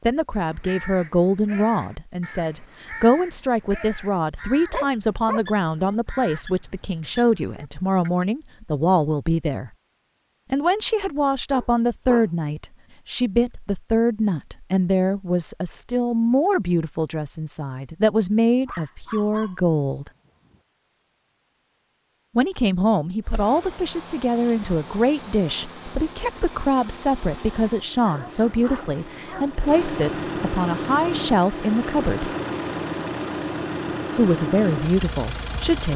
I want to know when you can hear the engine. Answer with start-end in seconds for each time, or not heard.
23.2-35.9.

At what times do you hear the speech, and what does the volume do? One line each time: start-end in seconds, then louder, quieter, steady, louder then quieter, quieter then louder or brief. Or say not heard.
0.0-9.7 steady
10.5-20.1 steady
22.4-32.4 steady
34.1-35.9 brief.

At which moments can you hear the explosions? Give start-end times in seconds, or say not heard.
not heard.